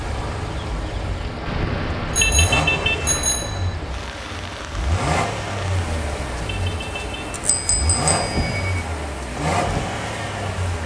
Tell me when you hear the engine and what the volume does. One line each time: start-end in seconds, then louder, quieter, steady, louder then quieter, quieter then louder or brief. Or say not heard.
0.0-10.8 louder.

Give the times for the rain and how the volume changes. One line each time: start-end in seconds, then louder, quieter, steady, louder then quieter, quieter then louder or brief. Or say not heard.
0.0-10.8 steady.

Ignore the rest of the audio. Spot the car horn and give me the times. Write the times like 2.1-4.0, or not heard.
1.4-3.2, 5.7-7.4.